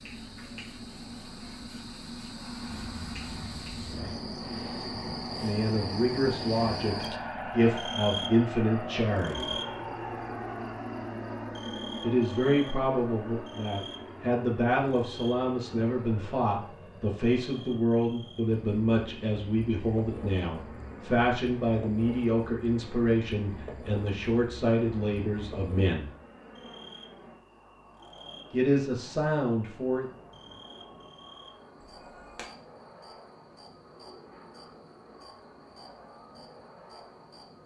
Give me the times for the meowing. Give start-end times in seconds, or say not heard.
2.6-4.2, 32.0-32.5.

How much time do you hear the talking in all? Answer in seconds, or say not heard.
20 s.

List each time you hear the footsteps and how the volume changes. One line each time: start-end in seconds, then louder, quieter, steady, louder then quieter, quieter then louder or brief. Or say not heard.
not heard.